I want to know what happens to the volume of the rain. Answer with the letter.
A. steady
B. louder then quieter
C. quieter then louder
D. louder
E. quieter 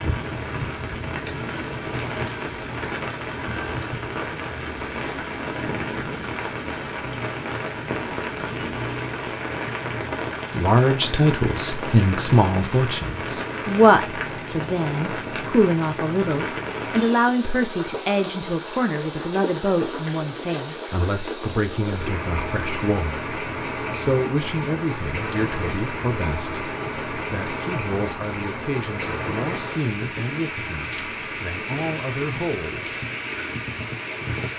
A.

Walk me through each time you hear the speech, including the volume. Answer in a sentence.
You can hear the speech from 10.5 to 33.0 s, getting quieter.